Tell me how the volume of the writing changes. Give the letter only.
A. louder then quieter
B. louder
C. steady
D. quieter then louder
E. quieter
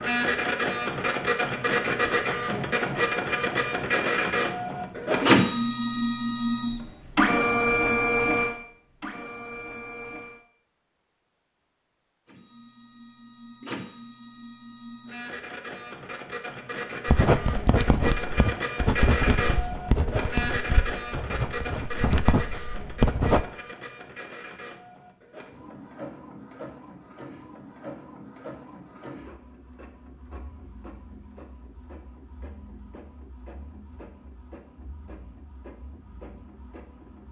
D.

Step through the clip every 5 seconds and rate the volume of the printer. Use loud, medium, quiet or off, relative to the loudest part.
loud, loud, quiet, medium, medium, quiet, quiet, quiet.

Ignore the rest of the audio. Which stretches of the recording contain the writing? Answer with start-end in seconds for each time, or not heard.
17.1-23.4.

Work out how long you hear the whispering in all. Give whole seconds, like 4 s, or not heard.
not heard.